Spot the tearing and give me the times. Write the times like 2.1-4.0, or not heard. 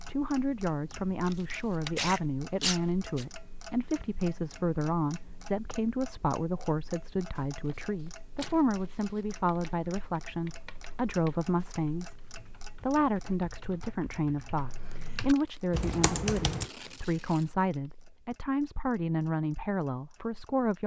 1.2-3.2, 7.7-9.3, 15.3-17.9.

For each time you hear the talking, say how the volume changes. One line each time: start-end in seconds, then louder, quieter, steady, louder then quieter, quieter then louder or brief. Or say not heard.
0.1-20.8 steady.